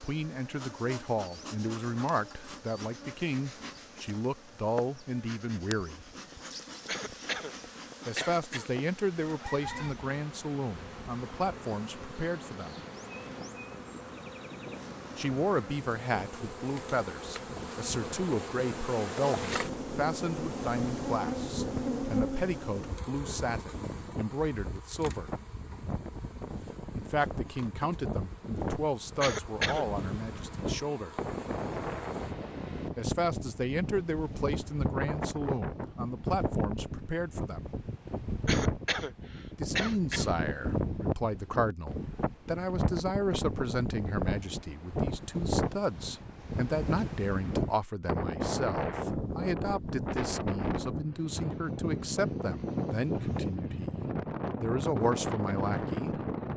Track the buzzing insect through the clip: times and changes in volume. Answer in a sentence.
The buzzing insect can be heard from 0.0 to 32.4 s, getting louder then quieter.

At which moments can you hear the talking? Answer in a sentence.
The talking can be heard from 0.1 to 6.0 s, from 8.1 to 12.8 s, from 15.2 to 25.3 s, from 26.9 to 31.1 s, from 33.0 to 37.6 s and from 39.5 to 56.5 s.